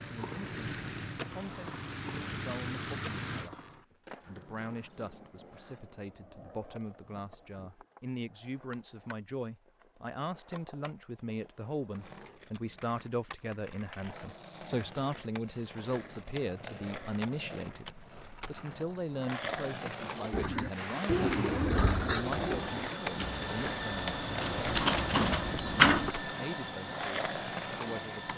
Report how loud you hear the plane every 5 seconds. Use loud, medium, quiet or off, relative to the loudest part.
loud, off, off, off, loud, loud.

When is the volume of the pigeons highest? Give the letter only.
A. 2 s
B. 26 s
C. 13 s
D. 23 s
B.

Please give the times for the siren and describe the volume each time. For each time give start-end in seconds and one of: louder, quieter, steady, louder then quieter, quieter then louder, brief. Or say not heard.
not heard.